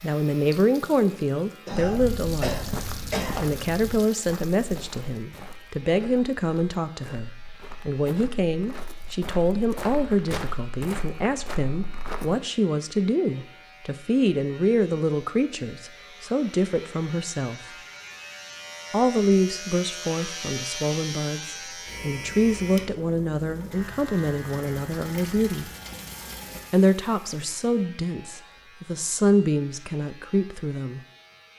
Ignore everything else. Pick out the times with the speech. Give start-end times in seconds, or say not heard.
0.0-2.7, 3.4-17.6, 18.9-25.7, 26.7-31.0.